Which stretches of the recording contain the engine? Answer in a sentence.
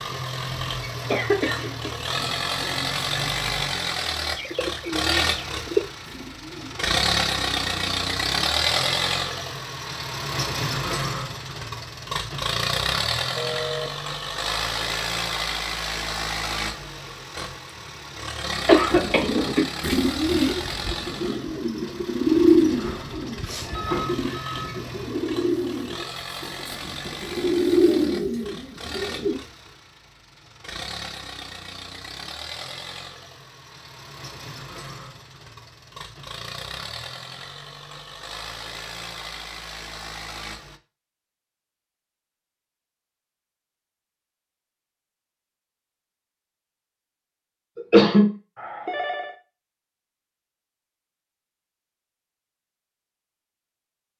You can hear the engine from 0.0 to 40.8 s.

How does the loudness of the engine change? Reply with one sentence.
The loudness of the engine goes down.